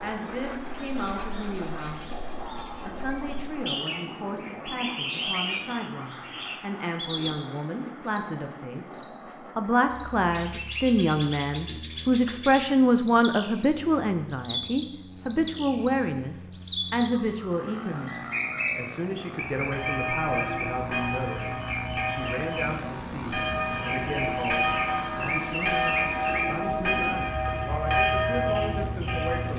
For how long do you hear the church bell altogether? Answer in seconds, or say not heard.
10 s.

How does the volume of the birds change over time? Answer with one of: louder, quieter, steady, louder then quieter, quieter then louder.
steady.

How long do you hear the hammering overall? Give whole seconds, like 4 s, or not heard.
not heard.